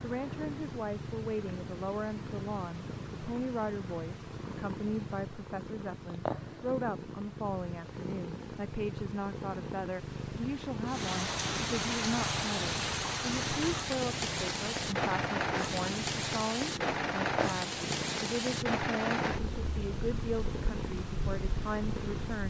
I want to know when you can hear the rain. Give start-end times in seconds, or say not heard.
10.8-22.4.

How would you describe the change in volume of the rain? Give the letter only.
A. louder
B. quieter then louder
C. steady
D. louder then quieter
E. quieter
E.